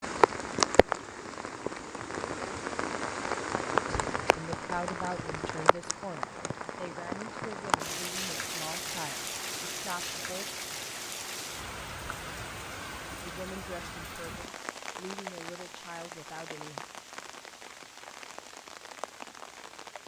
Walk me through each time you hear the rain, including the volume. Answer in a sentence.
You can hear the rain from 0.0 to 20.0 s, getting quieter.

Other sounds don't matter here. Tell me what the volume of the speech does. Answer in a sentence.
The volume of the speech goes down.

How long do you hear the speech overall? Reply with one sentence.
The speech can be heard for 10 seconds in total.